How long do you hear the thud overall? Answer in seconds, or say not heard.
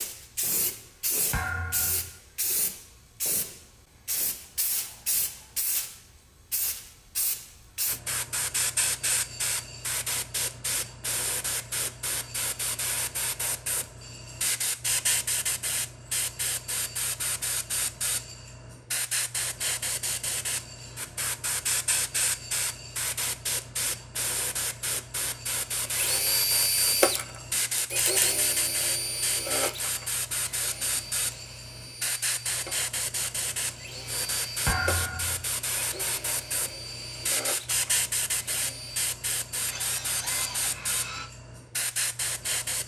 2 s.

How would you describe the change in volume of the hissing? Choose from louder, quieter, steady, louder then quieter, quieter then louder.
steady.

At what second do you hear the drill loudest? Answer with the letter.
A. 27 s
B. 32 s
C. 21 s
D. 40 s
A.